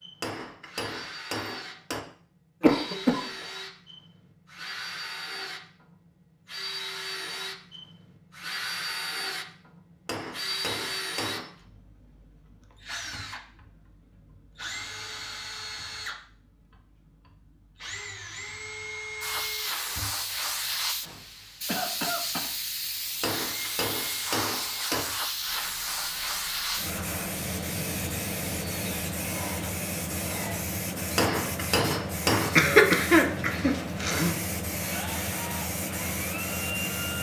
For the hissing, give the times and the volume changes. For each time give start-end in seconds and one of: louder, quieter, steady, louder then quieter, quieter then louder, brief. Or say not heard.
19.2-37.1 steady.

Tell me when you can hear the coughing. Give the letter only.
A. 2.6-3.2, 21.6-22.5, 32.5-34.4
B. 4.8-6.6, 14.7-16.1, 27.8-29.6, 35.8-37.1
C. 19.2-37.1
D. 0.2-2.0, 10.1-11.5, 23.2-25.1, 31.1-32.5
A.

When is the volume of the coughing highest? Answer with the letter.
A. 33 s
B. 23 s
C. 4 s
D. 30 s
A.